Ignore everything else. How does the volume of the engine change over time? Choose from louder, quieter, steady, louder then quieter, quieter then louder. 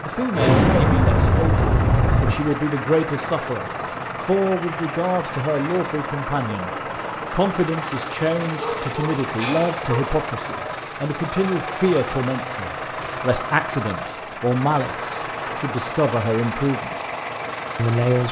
steady.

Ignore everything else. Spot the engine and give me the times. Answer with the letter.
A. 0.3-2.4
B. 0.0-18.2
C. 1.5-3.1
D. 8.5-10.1
B.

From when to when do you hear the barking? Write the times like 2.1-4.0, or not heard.
8.5-10.1.